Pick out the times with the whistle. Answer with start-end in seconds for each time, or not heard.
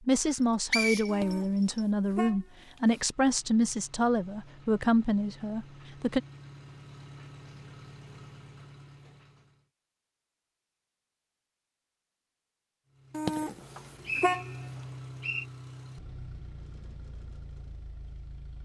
0.7-1.8, 14.1-15.4.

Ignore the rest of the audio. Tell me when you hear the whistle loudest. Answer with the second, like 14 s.
1 s.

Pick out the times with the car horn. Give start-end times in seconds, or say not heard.
1.1-3.0, 13.1-14.6.